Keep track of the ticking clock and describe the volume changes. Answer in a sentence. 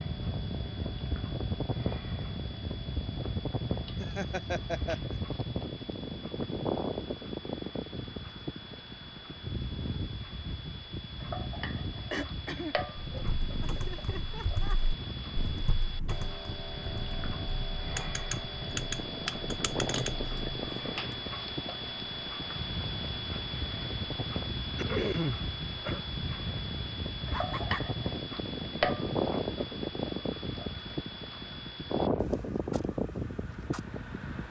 The loudness of the ticking clock goes up.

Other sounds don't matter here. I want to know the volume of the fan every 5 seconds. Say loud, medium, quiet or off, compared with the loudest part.
loud, loud, medium, medium, medium, loud, loud.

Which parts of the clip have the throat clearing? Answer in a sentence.
You can hear the throat clearing from 11.7 to 12.8 s and from 24.8 to 26.0 s.